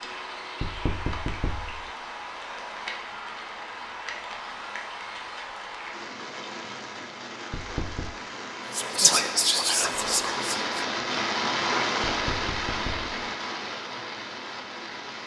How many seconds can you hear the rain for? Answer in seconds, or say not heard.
15 s.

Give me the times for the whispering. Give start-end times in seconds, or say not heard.
8.7-10.7.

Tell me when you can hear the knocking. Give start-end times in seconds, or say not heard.
0.6-1.9, 7.5-8.2, 12.1-13.1.